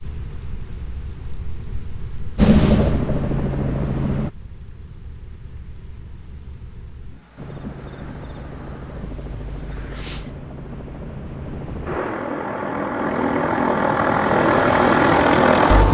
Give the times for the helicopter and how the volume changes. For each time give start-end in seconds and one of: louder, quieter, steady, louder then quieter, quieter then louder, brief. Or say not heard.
2.4-4.3 brief
7.3-15.9 louder.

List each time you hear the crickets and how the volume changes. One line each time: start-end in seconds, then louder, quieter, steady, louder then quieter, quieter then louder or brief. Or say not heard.
0.0-10.4 quieter.